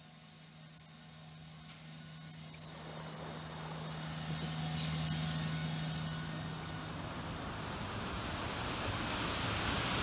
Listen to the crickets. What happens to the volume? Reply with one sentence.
The volume of the crickets goes up, then down.